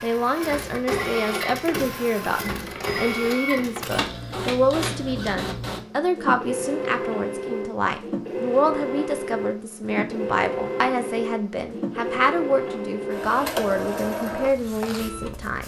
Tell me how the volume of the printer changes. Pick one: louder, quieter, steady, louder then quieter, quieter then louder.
steady.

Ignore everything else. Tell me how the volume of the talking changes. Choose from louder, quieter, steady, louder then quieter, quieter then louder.
steady.